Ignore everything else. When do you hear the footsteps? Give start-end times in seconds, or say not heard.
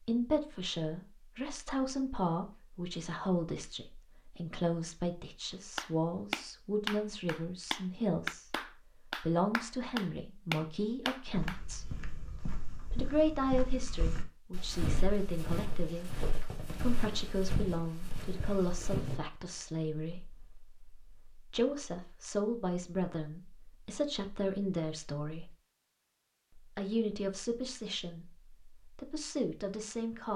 11.3-19.2.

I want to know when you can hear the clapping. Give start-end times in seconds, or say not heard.
5.8-11.6.